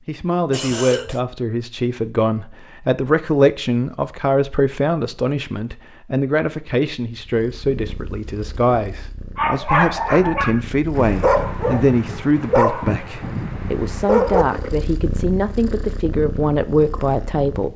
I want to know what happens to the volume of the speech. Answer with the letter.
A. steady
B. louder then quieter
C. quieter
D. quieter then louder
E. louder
A.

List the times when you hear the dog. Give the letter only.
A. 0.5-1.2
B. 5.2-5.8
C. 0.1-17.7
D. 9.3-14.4
D.